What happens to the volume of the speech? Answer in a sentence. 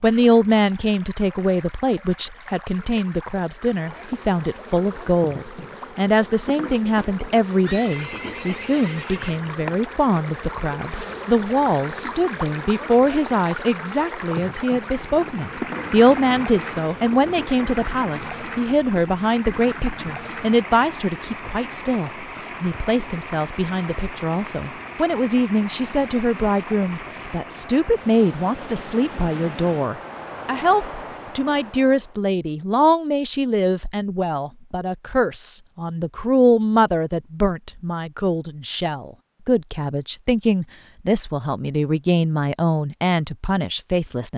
The volume of the speech stays about the same.